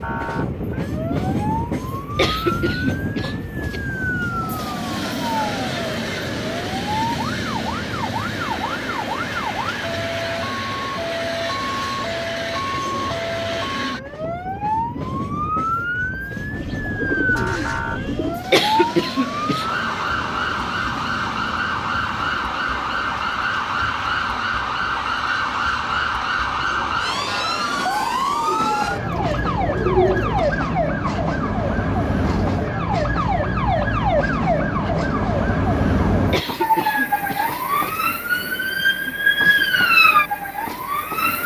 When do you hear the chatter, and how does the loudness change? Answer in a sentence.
The chatter can't be heard in this clip.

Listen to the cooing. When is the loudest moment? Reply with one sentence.
The volume of the cooing peaks at 30 seconds.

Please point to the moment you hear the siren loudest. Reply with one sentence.
The volume of the siren peaks at 40 seconds.